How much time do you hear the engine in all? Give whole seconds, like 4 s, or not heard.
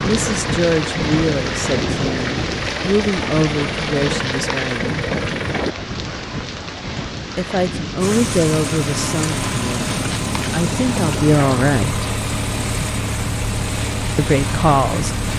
13 s.